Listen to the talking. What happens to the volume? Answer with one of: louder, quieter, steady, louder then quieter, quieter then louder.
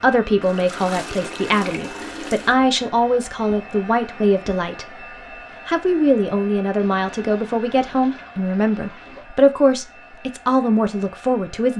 steady.